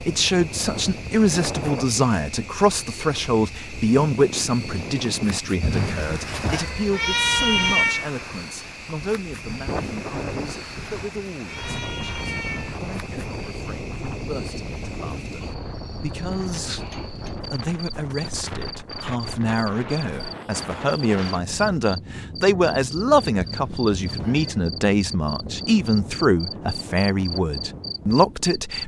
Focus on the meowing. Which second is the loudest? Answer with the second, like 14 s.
8 s.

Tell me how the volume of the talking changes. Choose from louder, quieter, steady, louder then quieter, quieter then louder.
quieter then louder.